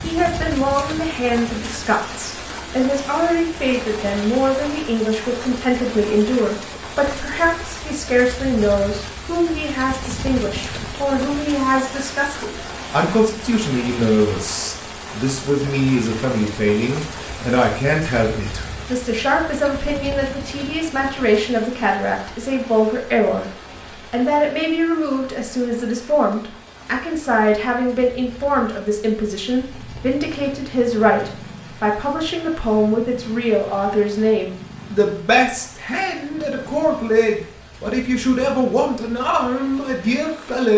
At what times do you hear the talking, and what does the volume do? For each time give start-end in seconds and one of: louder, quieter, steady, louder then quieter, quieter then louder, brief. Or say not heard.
0.0-23.5 steady
24.1-40.7 steady.